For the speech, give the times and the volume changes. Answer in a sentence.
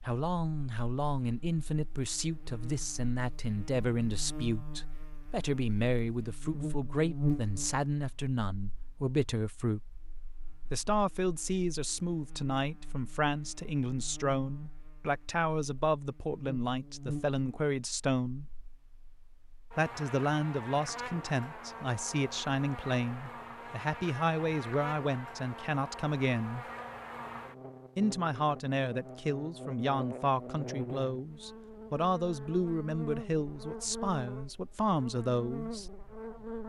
The speech can be heard from 0.1 to 9.9 s, at a steady volume; from 10.7 to 18.4 s, at a steady volume; from 19.8 to 26.6 s, at a steady volume; and from 27.9 to 35.9 s, at a steady volume.